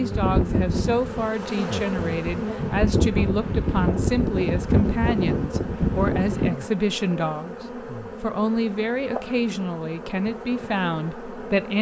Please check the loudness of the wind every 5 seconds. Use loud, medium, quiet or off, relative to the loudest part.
loud, loud, off.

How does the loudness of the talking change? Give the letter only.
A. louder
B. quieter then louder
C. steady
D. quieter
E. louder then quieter
C.